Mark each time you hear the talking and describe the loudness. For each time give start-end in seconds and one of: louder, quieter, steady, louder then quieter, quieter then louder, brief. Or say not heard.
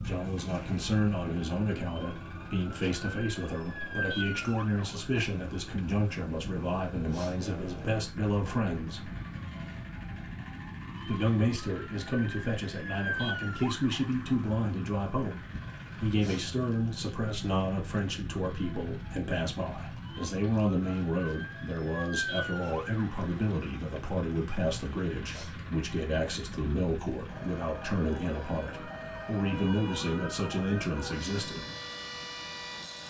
0.0-9.1 steady
11.1-31.6 steady.